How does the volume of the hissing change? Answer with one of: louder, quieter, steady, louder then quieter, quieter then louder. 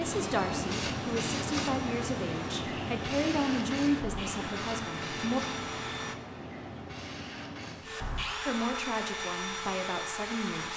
quieter.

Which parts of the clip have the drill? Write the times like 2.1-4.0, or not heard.
0.0-6.2, 7.8-10.7.